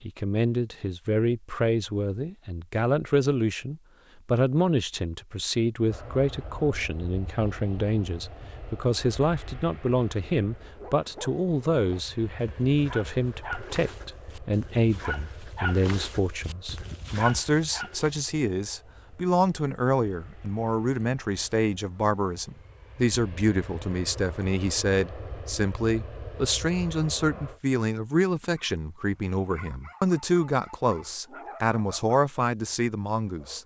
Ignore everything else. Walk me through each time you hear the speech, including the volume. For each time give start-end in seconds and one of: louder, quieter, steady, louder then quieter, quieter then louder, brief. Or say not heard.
0.0-33.6 steady.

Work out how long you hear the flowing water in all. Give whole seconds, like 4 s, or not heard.
not heard.